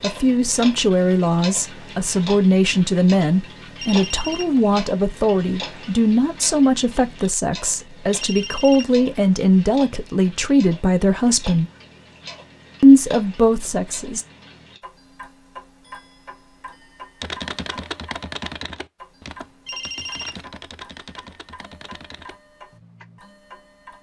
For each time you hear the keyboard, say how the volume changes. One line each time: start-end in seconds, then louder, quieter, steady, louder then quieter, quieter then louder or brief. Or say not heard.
17.2-23.2 quieter.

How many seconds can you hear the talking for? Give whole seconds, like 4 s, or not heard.
13 s.